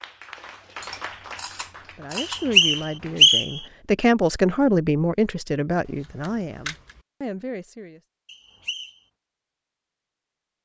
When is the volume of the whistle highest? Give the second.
3 s.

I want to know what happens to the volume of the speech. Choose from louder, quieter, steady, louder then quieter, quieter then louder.
louder then quieter.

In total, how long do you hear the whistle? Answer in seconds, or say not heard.
2 s.